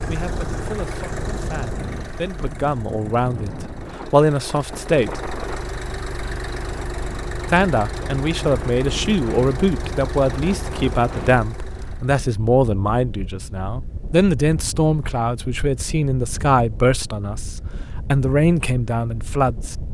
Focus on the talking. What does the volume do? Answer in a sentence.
The loudness of the talking goes up.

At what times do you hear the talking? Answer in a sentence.
You can hear the talking from 0.1 to 5.2 s and from 7.5 to 19.8 s.